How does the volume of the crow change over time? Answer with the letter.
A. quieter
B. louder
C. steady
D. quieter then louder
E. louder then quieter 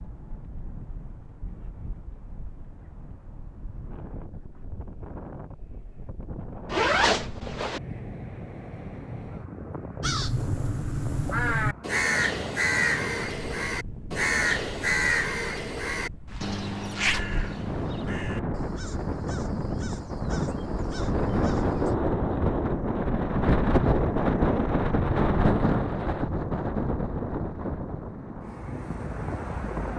A.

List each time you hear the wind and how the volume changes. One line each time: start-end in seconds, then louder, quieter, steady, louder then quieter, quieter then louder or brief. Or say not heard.
0.0-29.9 louder.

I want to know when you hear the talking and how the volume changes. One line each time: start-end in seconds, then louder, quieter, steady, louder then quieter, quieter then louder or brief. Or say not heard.
not heard.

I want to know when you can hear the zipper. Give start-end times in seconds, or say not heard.
6.7-7.8, 16.2-17.4.